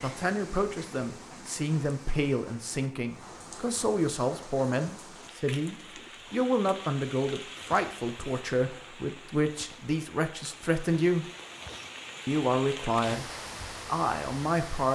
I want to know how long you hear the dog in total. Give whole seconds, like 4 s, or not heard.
not heard.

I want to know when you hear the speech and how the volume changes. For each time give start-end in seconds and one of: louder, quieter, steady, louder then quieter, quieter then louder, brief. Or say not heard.
0.0-11.2 steady
12.2-14.9 brief.